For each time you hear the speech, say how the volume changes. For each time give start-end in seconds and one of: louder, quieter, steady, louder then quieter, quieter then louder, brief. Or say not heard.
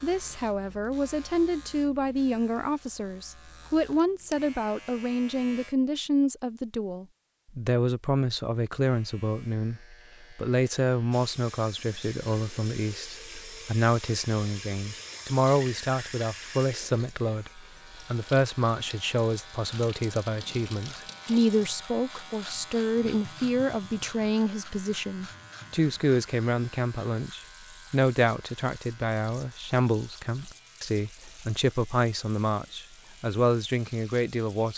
0.0-34.7 steady.